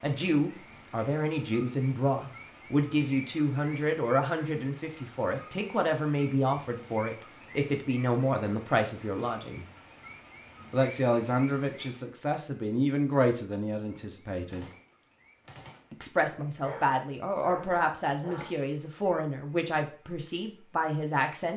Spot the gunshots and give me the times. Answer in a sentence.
You can hear the gunshots from 14.5 to 16.0 s.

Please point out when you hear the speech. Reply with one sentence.
The speech can be heard from 0.0 to 9.7 s, from 10.7 to 14.7 s and from 15.9 to 21.5 s.